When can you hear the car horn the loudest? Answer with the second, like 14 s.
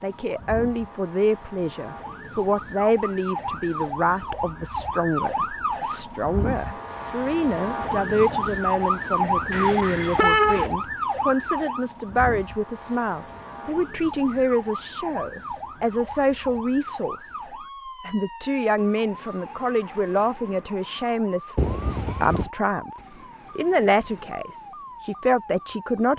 10 s.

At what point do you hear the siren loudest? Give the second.
9 s.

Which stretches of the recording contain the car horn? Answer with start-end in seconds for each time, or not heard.
9.5-10.7, 21.6-22.5.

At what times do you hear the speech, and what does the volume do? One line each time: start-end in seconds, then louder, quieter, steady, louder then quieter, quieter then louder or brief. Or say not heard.
0.0-22.9 steady
23.6-26.1 brief.